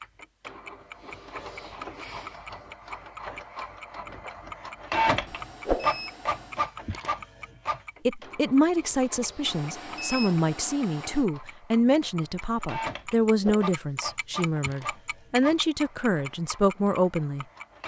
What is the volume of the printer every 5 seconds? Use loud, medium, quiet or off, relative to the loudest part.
medium, loud, medium, quiet.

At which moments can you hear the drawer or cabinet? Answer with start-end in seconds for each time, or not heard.
not heard.